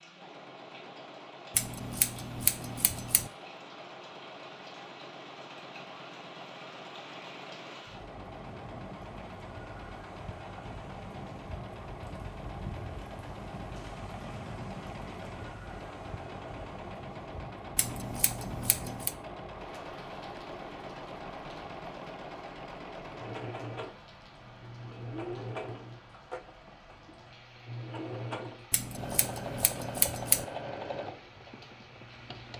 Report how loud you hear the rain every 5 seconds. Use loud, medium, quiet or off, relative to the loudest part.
medium, loud, loud, loud, medium, medium, medium.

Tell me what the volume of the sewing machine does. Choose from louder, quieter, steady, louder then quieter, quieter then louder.
louder.